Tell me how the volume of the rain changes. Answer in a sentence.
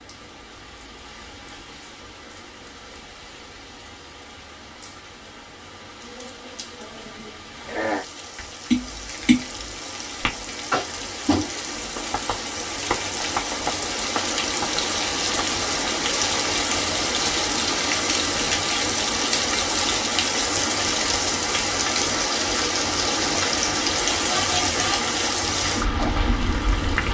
The loudness of the rain goes up.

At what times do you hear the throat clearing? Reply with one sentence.
The throat clearing can be heard from 7.0 to 8.1 s.